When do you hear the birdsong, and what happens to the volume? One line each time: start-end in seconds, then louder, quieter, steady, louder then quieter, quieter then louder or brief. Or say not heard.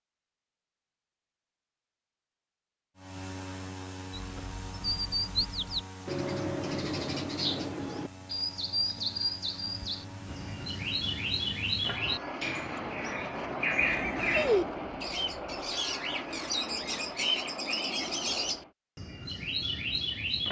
4.1-20.4 steady.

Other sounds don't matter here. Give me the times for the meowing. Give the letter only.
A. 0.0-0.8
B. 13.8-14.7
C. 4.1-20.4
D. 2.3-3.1
B.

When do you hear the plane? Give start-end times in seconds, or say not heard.
3.0-18.8.